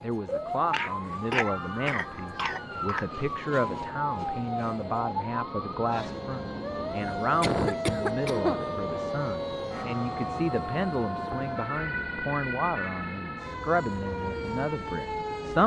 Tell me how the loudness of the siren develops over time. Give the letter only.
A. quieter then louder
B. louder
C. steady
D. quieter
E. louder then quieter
C.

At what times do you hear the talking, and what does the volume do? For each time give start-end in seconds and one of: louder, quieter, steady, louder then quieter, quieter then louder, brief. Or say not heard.
0.0-15.6 steady.